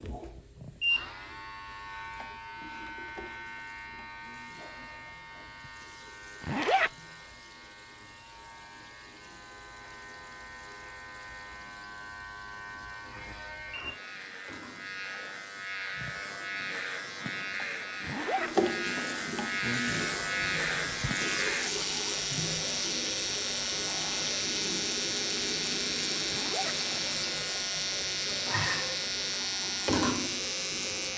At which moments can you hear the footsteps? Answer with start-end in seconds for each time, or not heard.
not heard.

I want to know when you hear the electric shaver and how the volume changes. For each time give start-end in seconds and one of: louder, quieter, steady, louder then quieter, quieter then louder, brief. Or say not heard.
0.0-31.1 quieter then louder.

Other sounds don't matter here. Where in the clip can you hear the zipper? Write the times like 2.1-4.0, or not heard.
6.4-6.9, 18.0-18.5, 26.2-26.8.